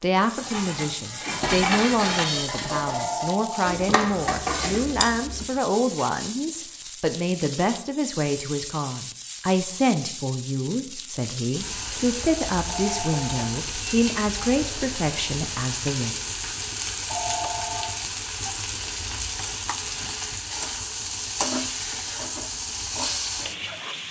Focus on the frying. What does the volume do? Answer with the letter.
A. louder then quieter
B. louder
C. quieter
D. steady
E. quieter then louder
B.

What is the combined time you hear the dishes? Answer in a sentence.
The dishes can be heard for 6 seconds in total.